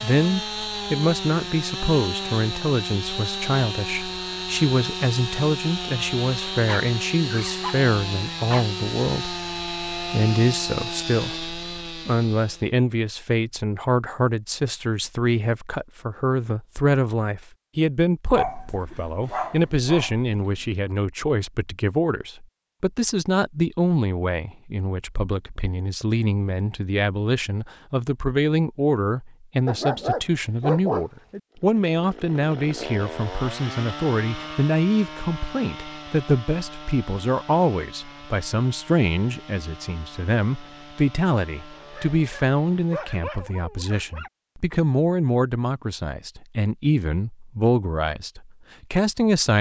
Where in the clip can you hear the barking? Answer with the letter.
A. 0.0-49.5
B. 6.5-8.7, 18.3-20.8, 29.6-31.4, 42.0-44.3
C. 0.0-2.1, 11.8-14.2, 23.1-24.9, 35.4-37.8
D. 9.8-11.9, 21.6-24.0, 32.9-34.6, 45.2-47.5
B.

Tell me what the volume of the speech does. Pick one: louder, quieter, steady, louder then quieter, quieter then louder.
steady.